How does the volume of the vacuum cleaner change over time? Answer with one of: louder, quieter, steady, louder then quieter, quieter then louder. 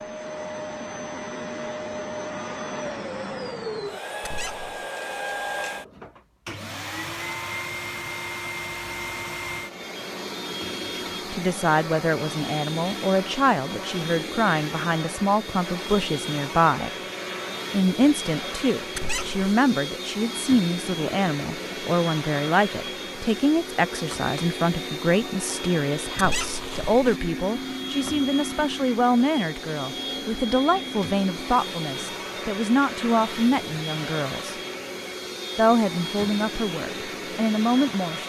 steady.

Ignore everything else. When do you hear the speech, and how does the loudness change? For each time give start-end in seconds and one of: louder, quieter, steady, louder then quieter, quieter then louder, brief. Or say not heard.
11.3-16.9 steady
17.7-34.5 steady
35.5-38.2 brief.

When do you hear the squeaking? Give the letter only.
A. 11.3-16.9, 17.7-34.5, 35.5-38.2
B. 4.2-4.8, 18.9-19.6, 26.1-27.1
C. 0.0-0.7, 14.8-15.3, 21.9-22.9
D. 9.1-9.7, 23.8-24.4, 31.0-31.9
B.